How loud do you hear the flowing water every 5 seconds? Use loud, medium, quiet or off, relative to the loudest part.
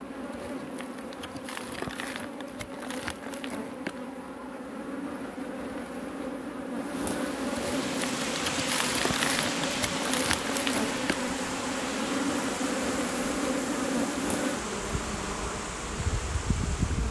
off, loud, loud, medium.